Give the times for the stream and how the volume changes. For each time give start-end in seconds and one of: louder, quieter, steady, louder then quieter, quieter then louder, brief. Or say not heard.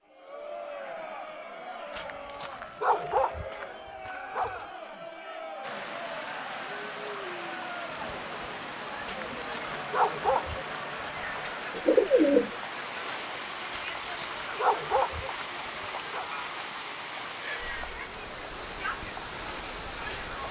5.6-20.4 steady.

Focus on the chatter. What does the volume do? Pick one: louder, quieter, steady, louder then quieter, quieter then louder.
steady.